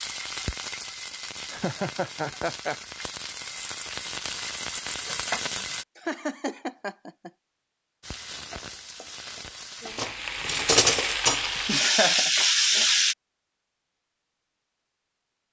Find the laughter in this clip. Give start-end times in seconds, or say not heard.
1.5-2.8, 6.0-7.3, 11.6-12.3.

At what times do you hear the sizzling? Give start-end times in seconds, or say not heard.
0.0-5.8, 8.0-13.2.